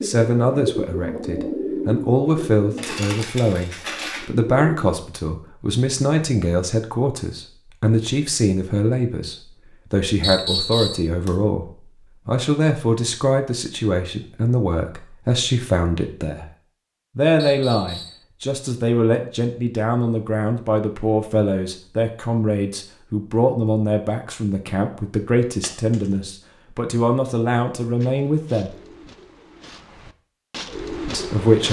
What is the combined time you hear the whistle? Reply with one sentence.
You can hear the whistle for 2 seconds altogether.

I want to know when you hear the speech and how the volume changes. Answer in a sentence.
The speech can be heard from 0.0 to 16.4 s, at a steady volume; from 17.1 to 28.8 s, at a steady volume; and briefly from 31.1 to 31.6 s.